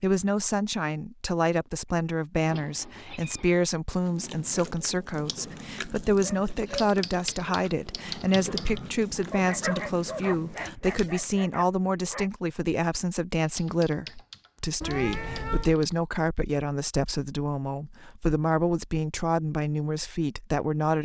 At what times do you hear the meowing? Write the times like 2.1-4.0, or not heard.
2.5-3.5, 14.8-15.8.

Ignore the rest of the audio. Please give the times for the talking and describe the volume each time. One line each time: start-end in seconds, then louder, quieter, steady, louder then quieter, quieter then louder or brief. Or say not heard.
0.0-21.0 steady.